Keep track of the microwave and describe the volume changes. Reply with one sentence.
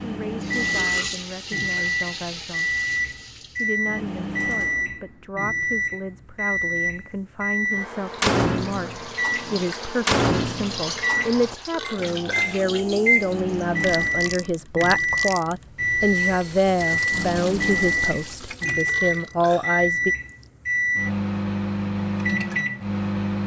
The volume of the microwave stays about the same.